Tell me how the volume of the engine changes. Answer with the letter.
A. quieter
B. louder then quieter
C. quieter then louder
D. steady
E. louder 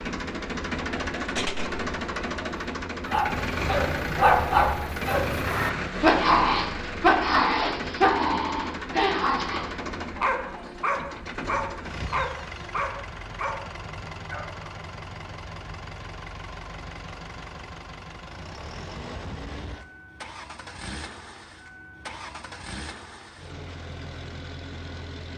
A.